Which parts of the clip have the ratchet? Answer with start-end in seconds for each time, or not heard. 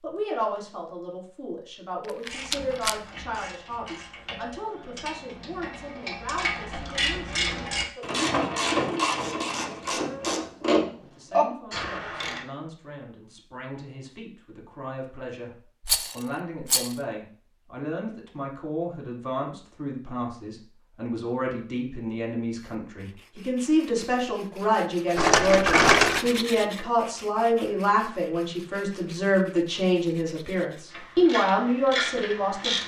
2.2-12.4, 30.9-32.8.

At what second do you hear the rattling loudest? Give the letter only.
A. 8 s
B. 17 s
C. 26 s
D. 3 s
C.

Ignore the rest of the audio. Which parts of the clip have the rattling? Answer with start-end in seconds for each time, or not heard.
2.2-3.0, 15.8-16.9, 25.1-26.2.